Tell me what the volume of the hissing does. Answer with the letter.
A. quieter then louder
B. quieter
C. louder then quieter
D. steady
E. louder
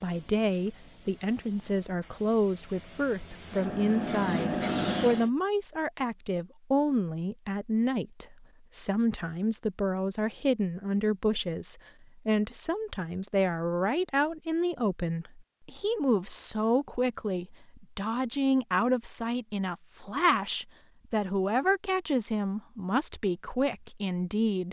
E.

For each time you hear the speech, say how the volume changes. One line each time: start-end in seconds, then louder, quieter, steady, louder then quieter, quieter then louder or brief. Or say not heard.
0.0-24.6 steady.